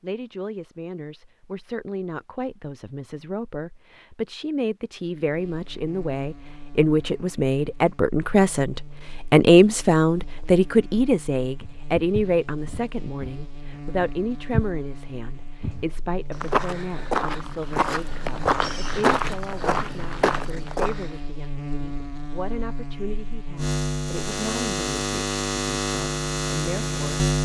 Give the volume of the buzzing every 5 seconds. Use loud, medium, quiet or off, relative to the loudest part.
off, quiet, quiet, quiet, medium, loud.